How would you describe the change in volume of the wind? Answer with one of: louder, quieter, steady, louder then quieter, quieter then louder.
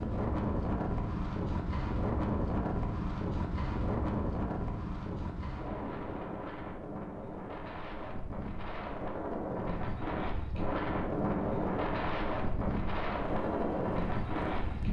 quieter then louder.